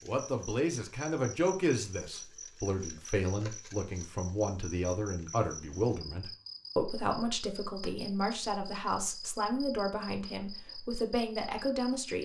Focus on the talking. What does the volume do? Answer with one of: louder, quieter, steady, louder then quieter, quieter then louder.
steady.